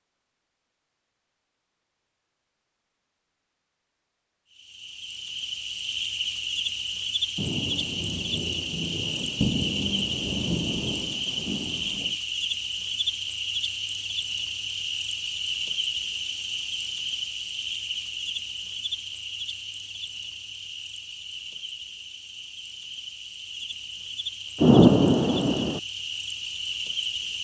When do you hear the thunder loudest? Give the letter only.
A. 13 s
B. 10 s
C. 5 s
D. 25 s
D.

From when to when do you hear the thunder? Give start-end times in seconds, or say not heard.
7.3-12.2, 24.6-25.8.